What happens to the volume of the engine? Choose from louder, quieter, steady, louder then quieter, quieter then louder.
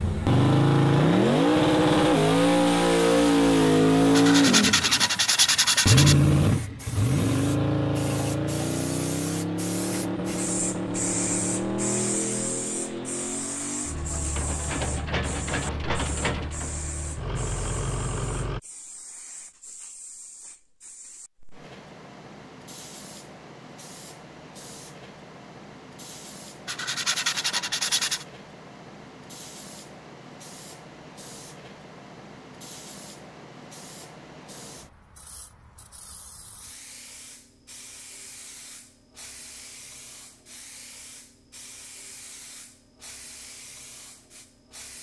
quieter.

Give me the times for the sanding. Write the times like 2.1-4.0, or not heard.
4.1-6.2, 26.6-28.2.